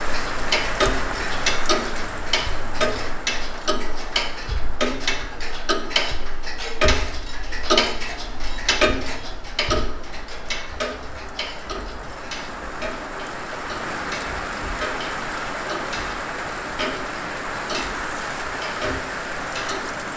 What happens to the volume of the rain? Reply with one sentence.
The volume of the rain goes down, then up.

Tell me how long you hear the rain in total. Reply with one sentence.
You can hear the rain for 20 seconds altogether.